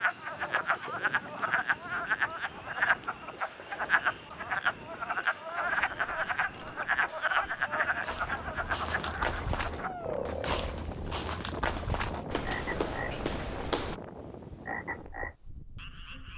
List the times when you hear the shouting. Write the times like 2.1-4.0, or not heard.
9.8-10.3.